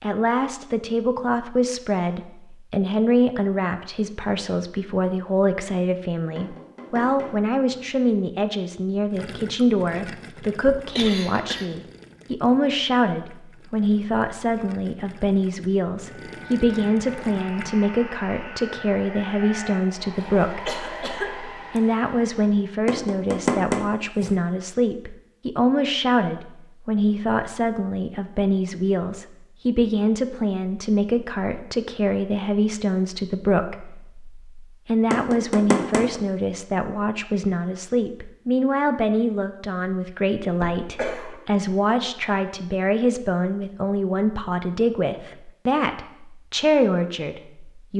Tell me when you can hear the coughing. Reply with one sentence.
You can hear the coughing from 10.7 to 11.8 s, from 20.1 to 21.8 s and from 40.5 to 41.4 s.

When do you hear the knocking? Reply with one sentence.
You can hear the knocking from 6.3 to 7.8 s, from 22.9 to 24.3 s and from 35.1 to 36.2 s.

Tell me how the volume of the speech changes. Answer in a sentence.
The volume of the speech stays about the same.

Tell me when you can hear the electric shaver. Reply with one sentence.
The electric shaver can't be heard in this clip.